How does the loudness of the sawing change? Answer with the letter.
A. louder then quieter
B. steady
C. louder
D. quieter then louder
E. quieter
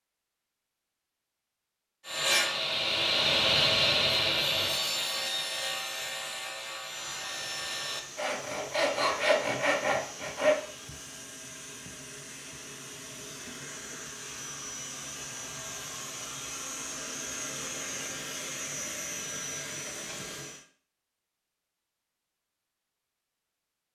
D.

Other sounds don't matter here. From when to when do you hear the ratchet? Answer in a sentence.
You can't hear the ratchet here.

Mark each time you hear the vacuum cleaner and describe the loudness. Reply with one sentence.
The vacuum cleaner can be heard from 6.8 to 20.6 s, getting louder.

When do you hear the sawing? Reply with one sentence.
The sawing can be heard from 2.0 to 10.6 s.